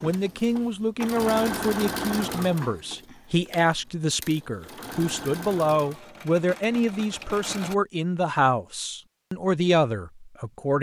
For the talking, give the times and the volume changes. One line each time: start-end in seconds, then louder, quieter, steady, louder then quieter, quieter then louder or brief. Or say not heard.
0.0-10.7 steady.